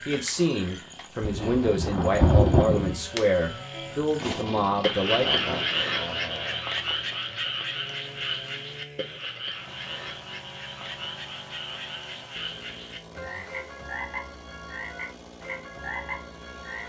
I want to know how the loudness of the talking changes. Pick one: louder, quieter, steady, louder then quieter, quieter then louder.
steady.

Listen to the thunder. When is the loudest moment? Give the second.
2 s.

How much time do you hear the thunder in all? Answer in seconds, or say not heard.
2 s.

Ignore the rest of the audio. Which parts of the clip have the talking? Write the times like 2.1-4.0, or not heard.
0.0-5.7.